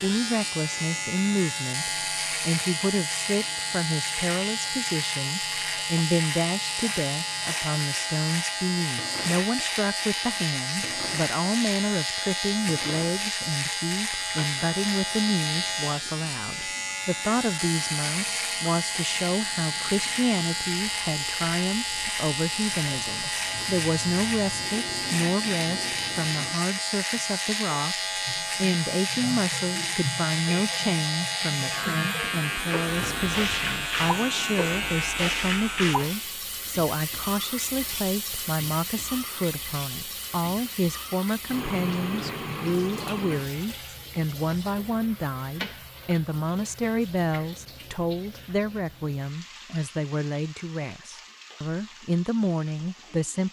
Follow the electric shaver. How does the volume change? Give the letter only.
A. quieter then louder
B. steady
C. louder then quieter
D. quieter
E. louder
B.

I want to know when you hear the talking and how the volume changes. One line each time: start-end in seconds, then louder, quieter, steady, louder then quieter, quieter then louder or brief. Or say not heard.
0.0-27.9 steady
28.6-53.4 steady.